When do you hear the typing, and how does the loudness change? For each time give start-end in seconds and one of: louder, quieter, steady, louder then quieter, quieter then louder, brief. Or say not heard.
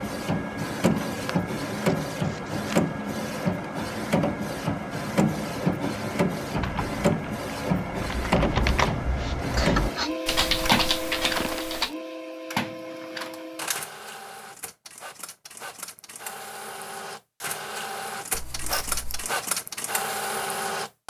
6.5-11.9 louder.